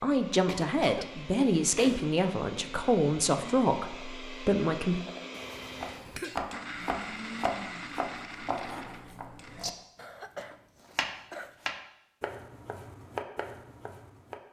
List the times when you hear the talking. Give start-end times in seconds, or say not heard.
0.0-5.0.